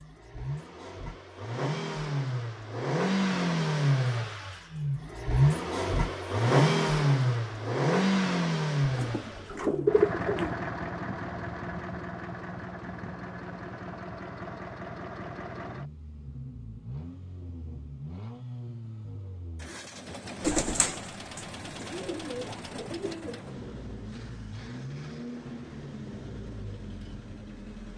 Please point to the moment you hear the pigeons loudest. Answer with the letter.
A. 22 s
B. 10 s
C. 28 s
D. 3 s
B.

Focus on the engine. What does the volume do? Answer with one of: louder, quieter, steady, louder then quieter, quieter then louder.
quieter.